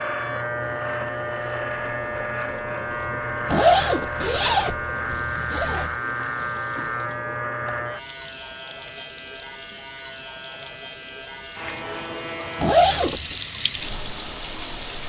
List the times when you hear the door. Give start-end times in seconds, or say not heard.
not heard.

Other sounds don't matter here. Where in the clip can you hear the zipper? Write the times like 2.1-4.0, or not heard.
3.5-6.0, 12.6-13.3.